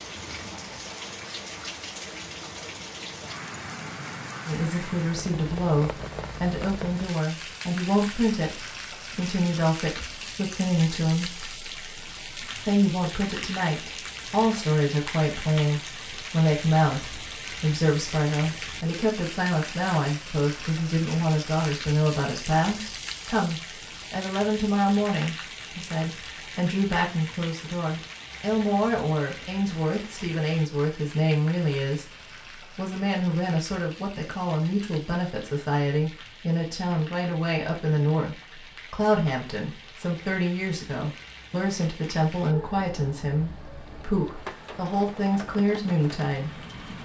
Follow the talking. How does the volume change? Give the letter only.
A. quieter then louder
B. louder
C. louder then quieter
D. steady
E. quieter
D.